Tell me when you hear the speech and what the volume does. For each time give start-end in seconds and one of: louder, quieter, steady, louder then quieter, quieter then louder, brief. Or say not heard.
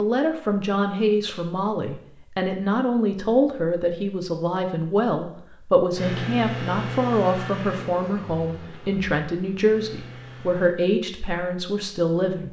0.0-12.4 steady.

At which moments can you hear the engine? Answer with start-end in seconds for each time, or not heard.
6.0-10.8.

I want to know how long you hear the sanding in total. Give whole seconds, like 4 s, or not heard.
not heard.